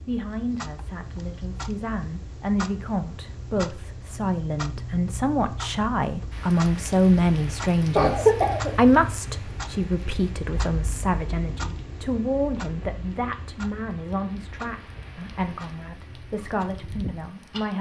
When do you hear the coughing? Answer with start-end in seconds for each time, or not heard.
8.0-8.9.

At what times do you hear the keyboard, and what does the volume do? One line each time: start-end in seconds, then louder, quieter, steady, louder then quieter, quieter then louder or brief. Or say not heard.
not heard.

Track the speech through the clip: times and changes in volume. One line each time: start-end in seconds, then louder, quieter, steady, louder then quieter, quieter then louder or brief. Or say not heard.
0.1-17.7 louder then quieter.